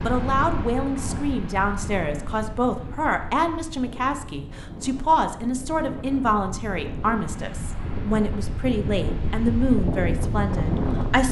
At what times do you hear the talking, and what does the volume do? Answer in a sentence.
The talking can be heard from 0.0 to 11.2 s, at a steady volume.